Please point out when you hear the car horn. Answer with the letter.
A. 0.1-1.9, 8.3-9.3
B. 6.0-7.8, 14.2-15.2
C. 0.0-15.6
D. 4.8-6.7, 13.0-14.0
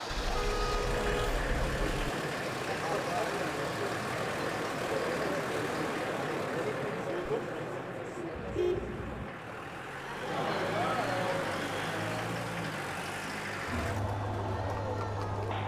A.